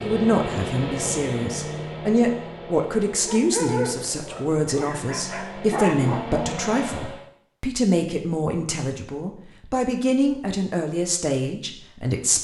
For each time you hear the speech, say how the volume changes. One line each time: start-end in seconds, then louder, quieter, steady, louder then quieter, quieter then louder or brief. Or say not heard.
0.1-12.3 steady.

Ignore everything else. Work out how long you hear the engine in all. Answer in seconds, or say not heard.
7 s.